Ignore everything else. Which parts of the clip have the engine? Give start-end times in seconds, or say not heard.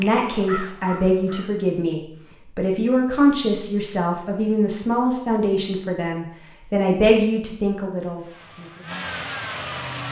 8.2-10.0.